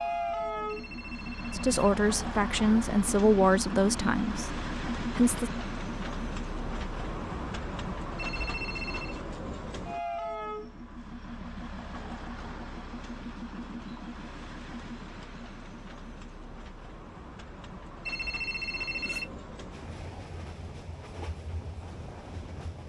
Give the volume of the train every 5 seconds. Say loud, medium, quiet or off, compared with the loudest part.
loud, loud, medium, medium, medium.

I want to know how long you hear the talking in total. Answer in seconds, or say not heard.
4 s.